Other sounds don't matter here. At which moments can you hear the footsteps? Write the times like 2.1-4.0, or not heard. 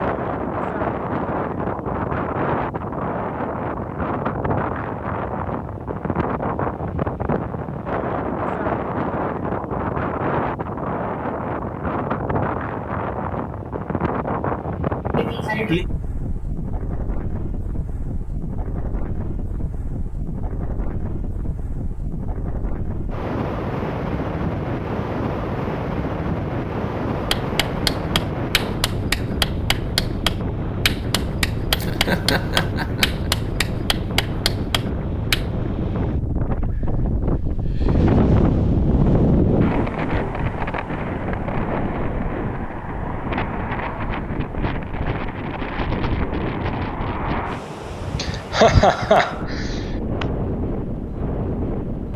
not heard.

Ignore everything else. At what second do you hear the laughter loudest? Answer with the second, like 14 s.
49 s.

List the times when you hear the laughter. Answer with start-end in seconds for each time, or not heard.
15.2-15.8, 31.7-33.3, 48.1-50.2.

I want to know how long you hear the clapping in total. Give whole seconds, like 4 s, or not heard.
8 s.